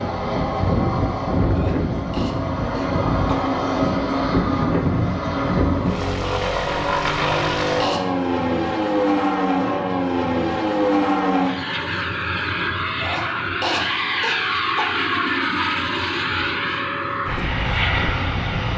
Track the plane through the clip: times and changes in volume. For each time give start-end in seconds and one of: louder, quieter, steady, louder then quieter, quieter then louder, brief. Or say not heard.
0.0-18.7 steady.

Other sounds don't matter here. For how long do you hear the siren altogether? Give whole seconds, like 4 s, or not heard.
not heard.